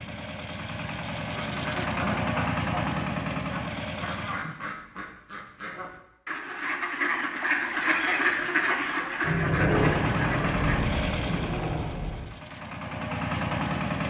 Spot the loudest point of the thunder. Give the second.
10 s.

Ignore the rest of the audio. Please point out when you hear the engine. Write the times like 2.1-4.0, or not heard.
0.0-4.4, 9.7-14.0.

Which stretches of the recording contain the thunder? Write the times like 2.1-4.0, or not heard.
9.2-12.3.